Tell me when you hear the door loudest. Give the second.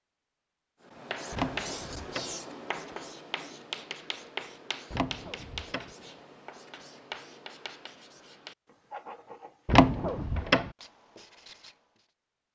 10 s.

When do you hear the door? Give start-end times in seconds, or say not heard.
1.3-2.4, 4.9-5.9, 9.7-10.7.